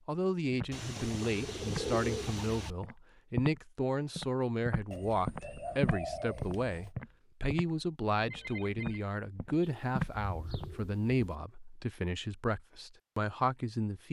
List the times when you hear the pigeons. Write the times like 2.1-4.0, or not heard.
0.7-2.8, 4.9-6.9, 9.6-11.2.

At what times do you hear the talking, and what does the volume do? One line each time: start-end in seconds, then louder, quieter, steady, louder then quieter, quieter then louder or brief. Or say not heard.
0.1-14.0 steady.